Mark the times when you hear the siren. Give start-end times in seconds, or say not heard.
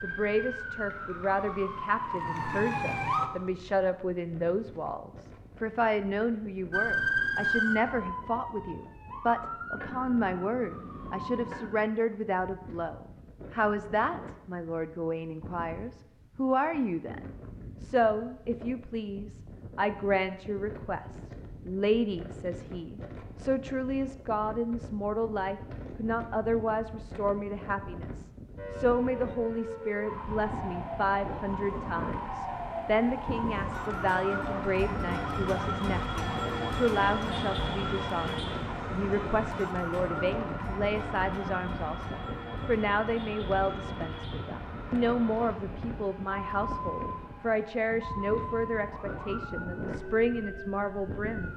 0.0-3.3, 6.7-11.8, 28.6-51.5.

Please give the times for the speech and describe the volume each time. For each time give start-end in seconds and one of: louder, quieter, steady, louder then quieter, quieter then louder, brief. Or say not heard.
0.0-17.2 steady
17.8-51.5 steady.